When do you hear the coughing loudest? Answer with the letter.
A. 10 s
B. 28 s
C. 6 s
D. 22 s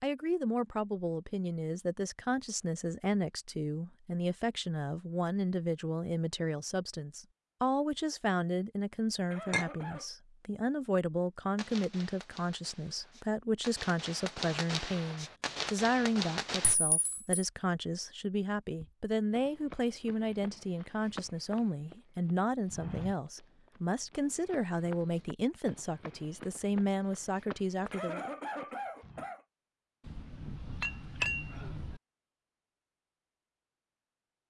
B.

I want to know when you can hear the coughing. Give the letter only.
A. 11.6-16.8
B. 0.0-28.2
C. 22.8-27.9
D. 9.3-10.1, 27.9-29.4
D.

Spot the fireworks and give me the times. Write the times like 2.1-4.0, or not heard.
11.6-16.8.